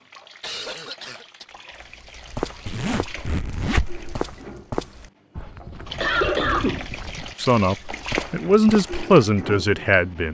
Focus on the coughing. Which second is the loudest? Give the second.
6 s.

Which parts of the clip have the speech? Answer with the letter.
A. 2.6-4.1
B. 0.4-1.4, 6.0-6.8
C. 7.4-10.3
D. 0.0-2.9
C.